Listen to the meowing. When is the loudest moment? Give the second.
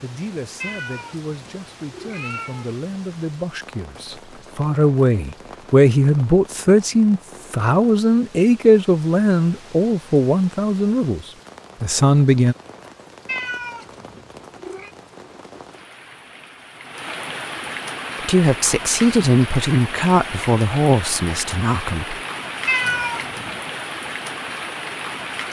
23 s.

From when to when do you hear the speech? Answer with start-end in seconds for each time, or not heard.
0.0-12.6, 18.1-22.1.